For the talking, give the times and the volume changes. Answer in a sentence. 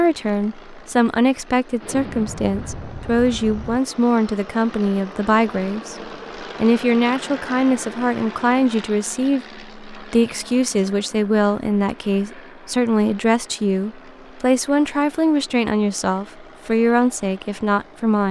The talking can be heard from 0.0 to 18.2 s, at a steady volume.